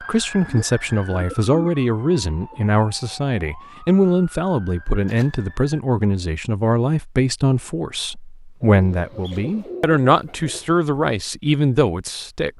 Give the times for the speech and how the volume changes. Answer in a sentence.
You can hear the speech from 0.0 to 12.5 s, at a steady volume.